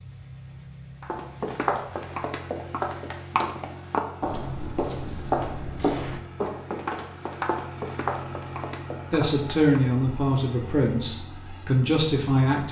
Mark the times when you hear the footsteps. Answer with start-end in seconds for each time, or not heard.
1.0-9.6.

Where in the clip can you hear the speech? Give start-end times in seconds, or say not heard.
9.1-12.6.